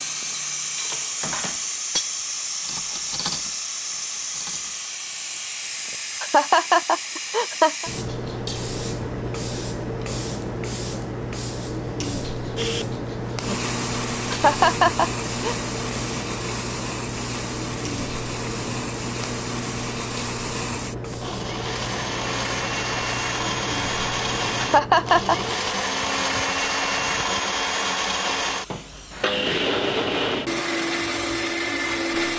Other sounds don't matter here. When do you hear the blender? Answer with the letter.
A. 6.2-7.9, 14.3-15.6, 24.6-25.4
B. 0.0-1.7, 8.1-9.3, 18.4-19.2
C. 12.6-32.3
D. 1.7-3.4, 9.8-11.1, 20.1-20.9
C.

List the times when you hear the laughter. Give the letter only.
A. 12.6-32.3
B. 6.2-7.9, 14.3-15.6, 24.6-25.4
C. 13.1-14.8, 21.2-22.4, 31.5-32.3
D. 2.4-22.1
B.